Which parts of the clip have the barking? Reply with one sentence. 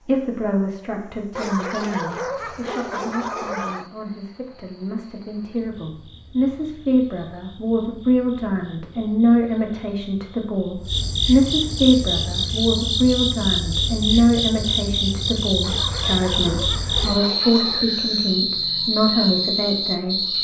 You can hear the barking from 1.4 to 3.9 s and from 15.6 to 17.9 s.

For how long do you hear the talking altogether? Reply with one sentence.
You can hear the talking for 20 seconds altogether.